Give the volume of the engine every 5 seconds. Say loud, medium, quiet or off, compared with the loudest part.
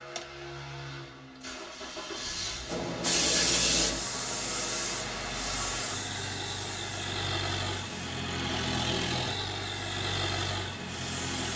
medium, loud, loud.